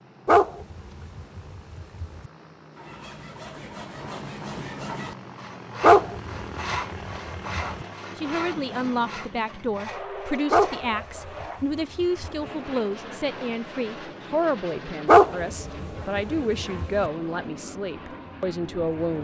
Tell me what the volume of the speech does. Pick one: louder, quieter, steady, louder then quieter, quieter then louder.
steady.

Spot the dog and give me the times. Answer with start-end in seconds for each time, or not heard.
0.2-2.3, 5.8-7.8, 10.5-12.5, 15.1-17.1.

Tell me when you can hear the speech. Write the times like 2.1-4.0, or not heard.
8.2-19.1.